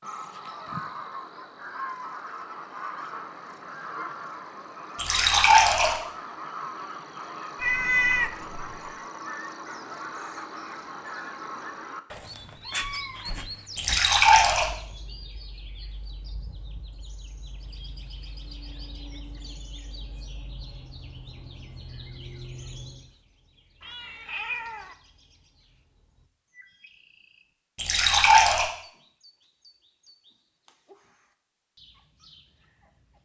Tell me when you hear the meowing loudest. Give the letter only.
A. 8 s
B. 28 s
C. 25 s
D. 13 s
A.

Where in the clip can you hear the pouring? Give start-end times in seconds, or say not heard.
5.0-6.0, 13.8-14.7, 27.8-28.6.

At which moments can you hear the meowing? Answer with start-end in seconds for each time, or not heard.
7.5-8.9, 12.1-14.0, 23.8-24.9.